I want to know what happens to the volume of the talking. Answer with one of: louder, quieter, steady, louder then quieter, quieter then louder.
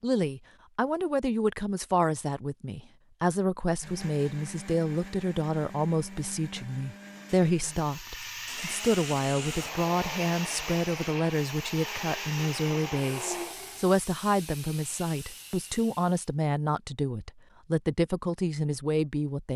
steady.